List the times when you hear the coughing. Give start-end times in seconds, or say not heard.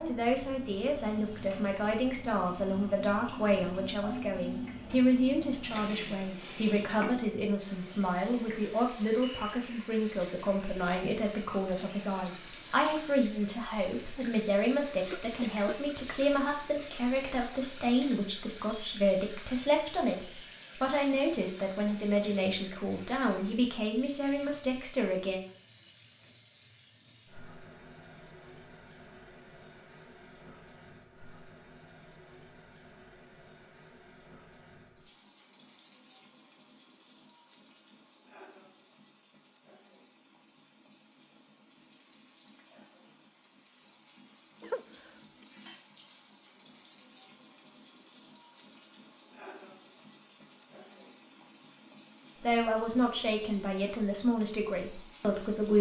15.1-15.8, 44.6-45.1.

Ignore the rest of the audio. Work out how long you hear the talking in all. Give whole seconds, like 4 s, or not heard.
29 s.